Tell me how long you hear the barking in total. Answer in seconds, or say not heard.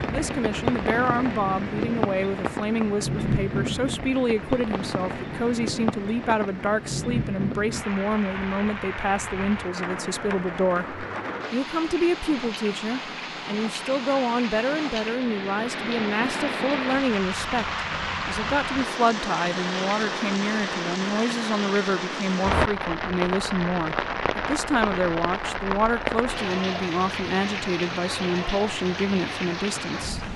not heard.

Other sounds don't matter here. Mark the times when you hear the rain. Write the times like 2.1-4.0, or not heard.
0.0-30.3.